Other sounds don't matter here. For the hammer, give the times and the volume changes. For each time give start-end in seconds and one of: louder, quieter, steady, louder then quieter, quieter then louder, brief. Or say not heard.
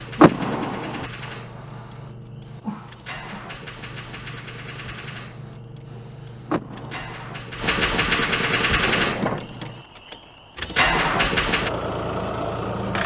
not heard.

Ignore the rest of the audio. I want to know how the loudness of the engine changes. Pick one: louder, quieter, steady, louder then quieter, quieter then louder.
louder.